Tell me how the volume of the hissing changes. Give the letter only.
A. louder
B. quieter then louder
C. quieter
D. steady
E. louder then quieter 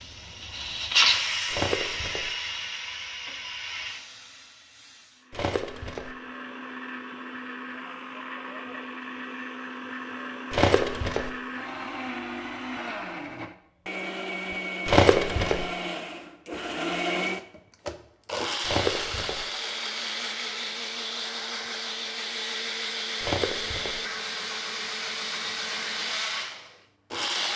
C.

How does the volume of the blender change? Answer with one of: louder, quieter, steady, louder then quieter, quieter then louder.
louder.